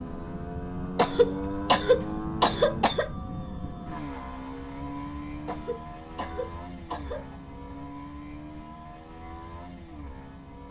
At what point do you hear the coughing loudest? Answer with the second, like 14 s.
2 s.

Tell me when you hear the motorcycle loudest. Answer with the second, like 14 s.
2 s.